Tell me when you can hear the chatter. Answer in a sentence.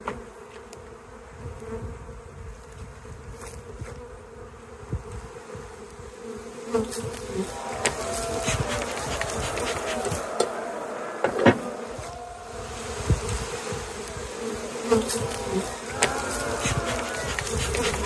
You can hear the chatter from 7.4 to 18.0 s.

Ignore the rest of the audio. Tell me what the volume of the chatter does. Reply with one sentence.
The volume of the chatter goes down, then up.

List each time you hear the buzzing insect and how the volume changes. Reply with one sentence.
The buzzing insect can be heard from 0.0 to 18.0 s, getting louder.